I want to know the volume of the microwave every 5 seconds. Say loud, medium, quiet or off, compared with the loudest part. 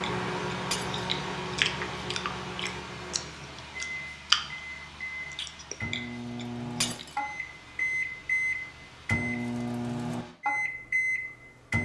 medium, loud, loud.